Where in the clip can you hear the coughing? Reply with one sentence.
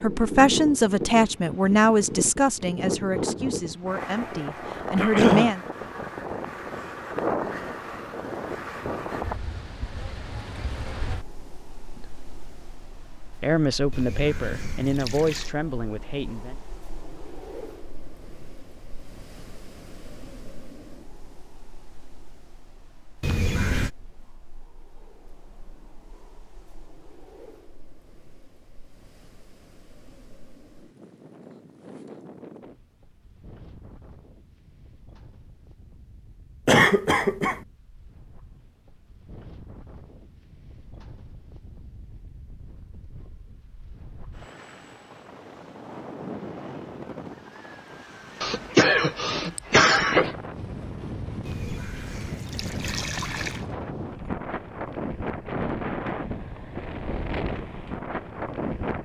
You can hear the coughing from 5.0 to 5.5 s, from 36.6 to 37.6 s and from 48.4 to 50.4 s.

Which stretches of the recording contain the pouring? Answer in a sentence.
The pouring can be heard from 13.9 to 15.5 s, from 23.2 to 23.9 s and from 51.5 to 53.6 s.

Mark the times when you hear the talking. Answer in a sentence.
You can hear the talking from 0.0 to 5.6 s and from 13.4 to 16.6 s.